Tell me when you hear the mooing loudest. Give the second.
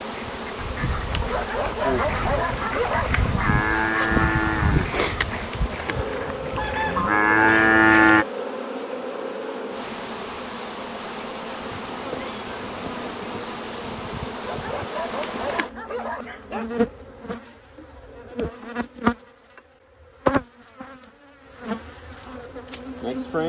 8 s.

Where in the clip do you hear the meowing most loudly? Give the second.
12 s.